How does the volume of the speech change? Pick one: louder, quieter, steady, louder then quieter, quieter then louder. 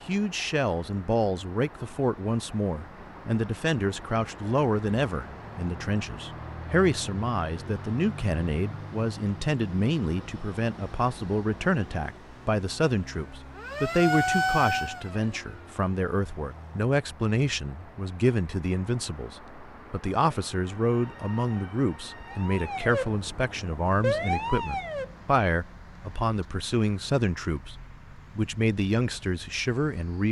steady.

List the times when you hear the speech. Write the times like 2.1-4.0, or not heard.
0.1-30.2.